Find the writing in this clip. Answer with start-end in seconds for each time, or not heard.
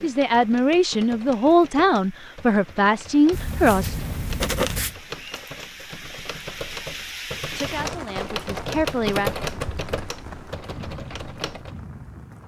3.3-5.0.